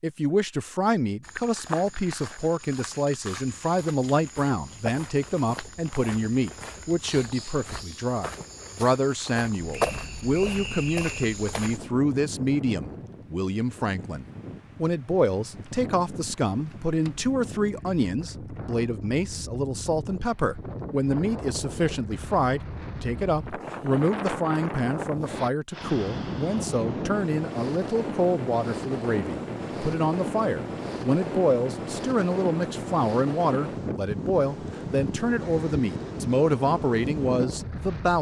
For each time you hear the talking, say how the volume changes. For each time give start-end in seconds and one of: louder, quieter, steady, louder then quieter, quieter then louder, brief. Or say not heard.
0.0-38.1 steady.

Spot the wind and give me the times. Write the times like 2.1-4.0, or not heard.
9.6-38.1.